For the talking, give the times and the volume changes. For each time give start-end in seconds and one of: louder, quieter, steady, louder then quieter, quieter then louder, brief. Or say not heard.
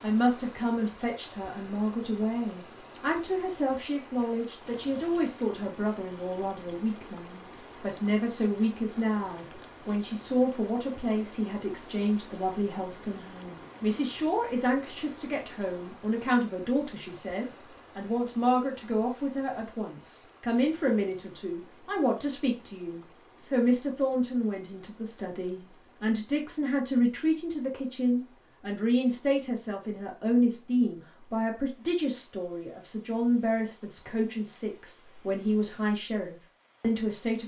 0.0-37.4 steady.